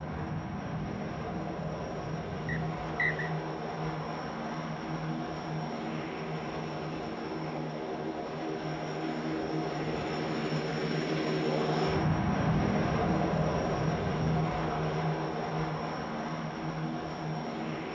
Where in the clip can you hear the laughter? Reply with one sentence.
The laughter can't be heard in this clip.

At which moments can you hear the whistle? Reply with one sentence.
The whistle can be heard from 2.5 to 3.3 s.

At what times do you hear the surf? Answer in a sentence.
You can't hear the surf here.